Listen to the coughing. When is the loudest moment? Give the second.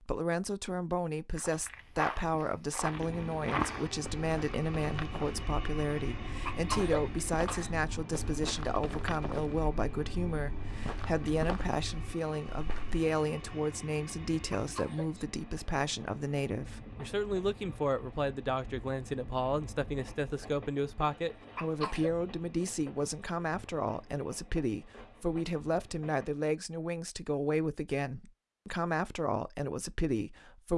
7 s.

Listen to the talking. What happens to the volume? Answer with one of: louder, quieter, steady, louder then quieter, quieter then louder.
steady.